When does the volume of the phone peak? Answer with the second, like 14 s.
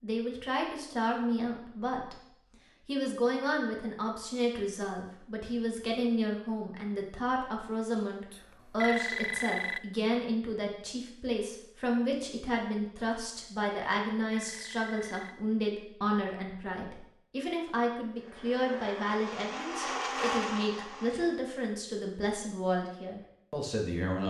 9 s.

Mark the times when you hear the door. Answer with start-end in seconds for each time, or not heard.
not heard.